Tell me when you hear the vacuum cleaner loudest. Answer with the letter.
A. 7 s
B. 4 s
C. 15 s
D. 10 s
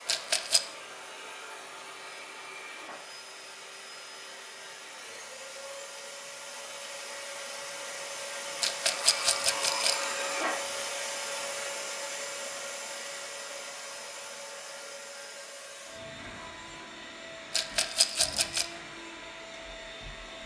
D.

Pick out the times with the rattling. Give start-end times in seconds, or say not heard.
0.1-0.6, 8.6-10.1, 17.5-18.6.